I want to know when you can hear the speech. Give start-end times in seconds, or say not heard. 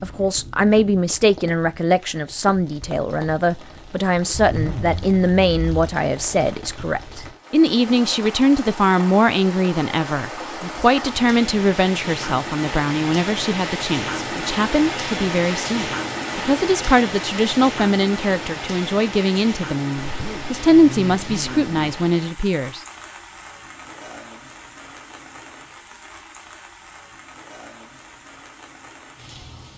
0.0-22.8.